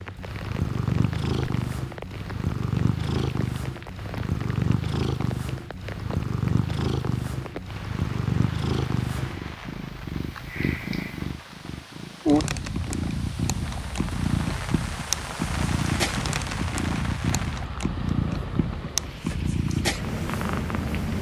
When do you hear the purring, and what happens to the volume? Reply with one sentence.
The purring can be heard from 0.0 to 21.1 s, at a steady volume.